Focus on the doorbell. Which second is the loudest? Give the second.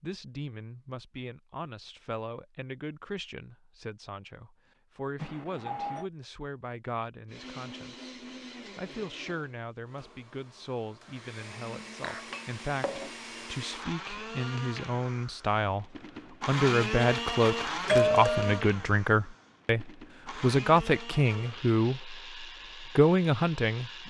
18 s.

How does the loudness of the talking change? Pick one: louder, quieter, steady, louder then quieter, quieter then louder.
louder.